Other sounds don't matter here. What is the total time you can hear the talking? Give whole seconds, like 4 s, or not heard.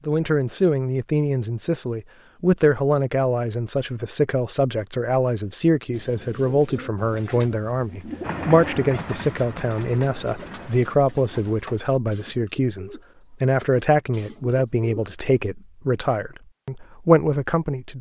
18 s.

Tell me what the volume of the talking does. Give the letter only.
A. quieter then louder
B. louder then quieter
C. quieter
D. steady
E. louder
D.